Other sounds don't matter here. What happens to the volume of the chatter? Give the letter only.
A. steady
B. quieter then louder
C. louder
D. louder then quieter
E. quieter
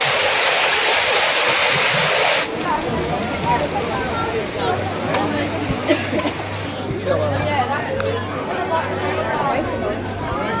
C.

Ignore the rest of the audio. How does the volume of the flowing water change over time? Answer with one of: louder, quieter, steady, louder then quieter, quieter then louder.
quieter.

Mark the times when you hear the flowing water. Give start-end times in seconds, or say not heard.
0.0-6.8.